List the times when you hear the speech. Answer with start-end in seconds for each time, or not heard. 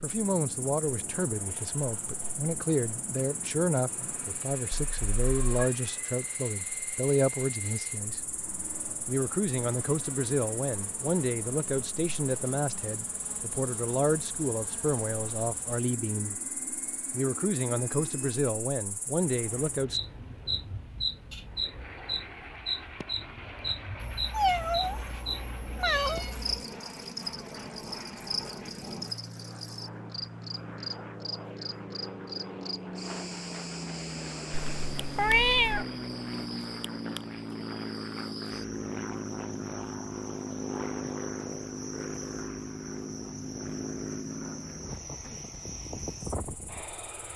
0.0-8.2, 9.1-16.4, 17.1-20.0.